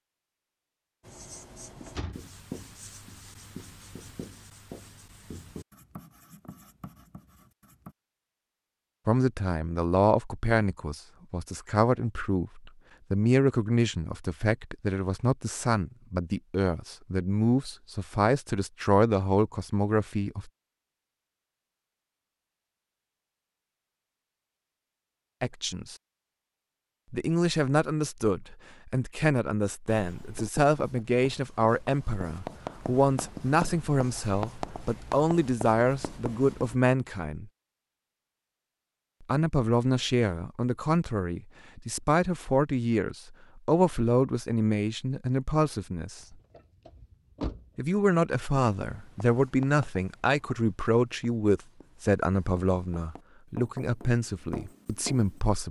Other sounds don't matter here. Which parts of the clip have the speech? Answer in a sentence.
The speech can be heard from 9.1 to 20.5 s, from 25.4 to 25.9 s, from 27.1 to 37.5 s, from 39.2 to 46.4 s and from 47.8 to 55.6 s.